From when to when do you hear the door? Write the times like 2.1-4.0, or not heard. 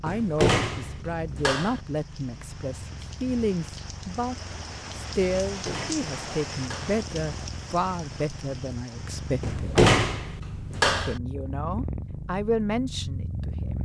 0.1-1.8, 5.5-7.0, 9.4-11.2.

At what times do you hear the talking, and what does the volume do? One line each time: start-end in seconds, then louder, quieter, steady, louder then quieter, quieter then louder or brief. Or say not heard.
0.0-9.8 steady
10.9-13.8 brief.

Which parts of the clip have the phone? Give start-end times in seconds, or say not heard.
not heard.